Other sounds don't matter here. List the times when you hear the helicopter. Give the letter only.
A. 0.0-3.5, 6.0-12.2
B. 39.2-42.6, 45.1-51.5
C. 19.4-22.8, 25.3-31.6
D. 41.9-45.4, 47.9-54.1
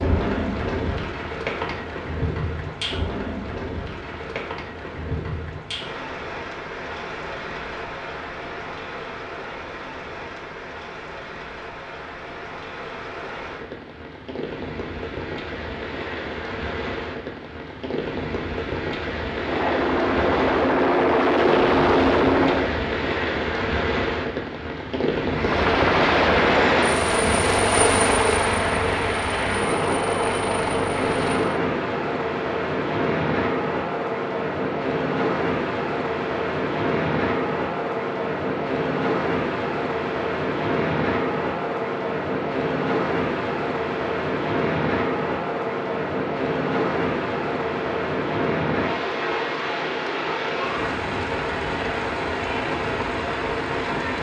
C.